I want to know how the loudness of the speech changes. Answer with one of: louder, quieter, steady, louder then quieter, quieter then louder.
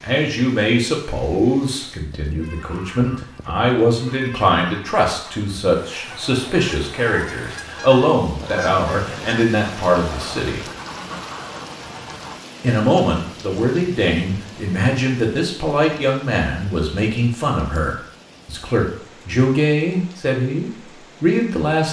steady.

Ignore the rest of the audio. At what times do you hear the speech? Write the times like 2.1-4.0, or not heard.
0.0-10.6, 12.6-21.8.